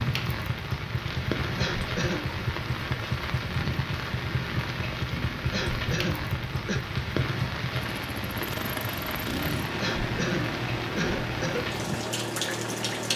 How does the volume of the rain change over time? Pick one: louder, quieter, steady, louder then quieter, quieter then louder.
steady.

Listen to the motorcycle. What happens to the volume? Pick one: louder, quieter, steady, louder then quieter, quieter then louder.
steady.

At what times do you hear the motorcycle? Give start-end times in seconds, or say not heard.
0.0-13.1.